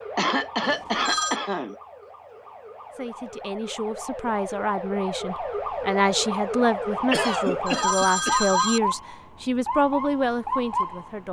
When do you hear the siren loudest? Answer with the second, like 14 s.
8 s.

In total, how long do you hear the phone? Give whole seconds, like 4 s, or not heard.
2 s.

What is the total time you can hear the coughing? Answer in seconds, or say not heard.
3 s.